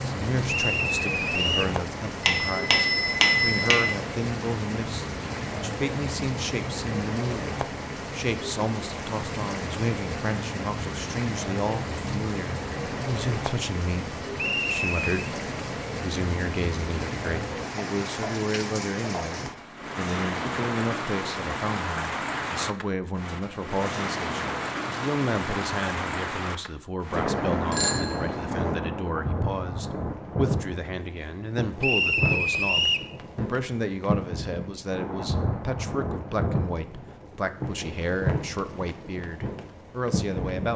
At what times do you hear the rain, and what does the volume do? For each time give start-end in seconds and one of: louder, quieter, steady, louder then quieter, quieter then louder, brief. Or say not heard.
0.0-40.7 steady.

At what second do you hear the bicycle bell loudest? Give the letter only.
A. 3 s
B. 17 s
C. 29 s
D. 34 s
A.